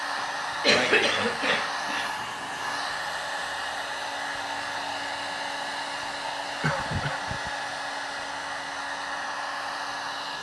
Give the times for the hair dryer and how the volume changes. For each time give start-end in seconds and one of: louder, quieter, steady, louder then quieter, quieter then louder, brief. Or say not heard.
0.0-10.3 steady.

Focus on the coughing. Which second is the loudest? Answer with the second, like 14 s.
1 s.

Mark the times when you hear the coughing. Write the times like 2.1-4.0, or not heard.
0.1-2.1, 6.6-7.5.